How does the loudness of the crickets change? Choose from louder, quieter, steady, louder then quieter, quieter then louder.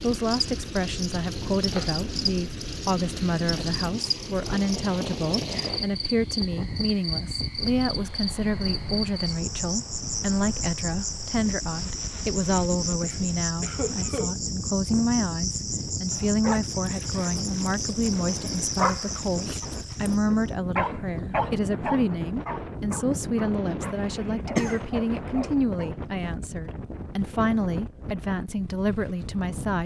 steady.